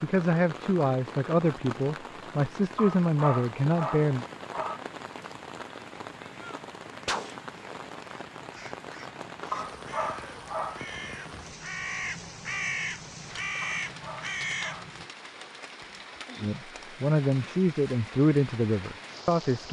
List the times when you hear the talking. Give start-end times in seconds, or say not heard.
0.0-4.2, 16.4-19.6.